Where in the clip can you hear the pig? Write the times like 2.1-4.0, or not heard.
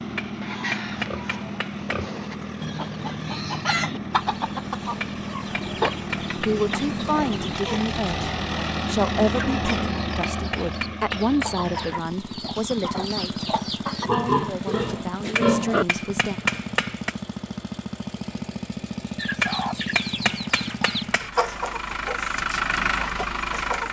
0.4-2.4, 14.1-15.8.